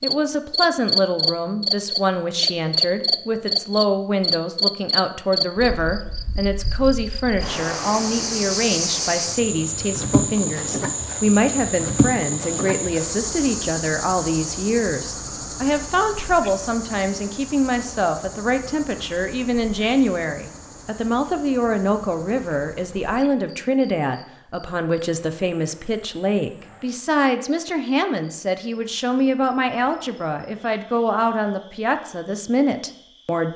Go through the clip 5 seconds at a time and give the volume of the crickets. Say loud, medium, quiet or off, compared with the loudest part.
loud, medium, medium, quiet, quiet, quiet, quiet.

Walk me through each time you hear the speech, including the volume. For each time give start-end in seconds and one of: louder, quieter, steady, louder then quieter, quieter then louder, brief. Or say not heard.
0.0-33.5 steady.